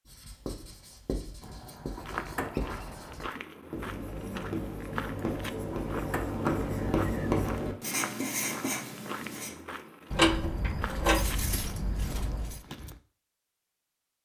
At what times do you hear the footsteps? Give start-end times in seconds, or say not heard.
1.9-13.0.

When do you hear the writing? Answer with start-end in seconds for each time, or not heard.
0.1-9.6.